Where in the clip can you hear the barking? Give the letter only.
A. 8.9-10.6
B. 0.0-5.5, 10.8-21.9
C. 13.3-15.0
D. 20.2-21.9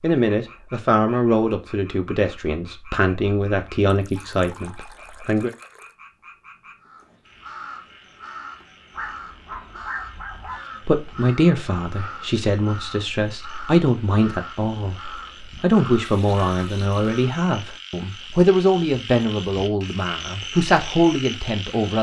A.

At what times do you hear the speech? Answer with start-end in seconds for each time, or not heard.
0.0-5.5, 10.8-21.9.